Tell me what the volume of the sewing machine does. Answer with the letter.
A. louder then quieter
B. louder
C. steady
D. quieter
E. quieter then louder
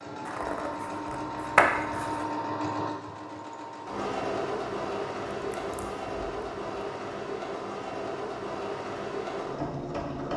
C.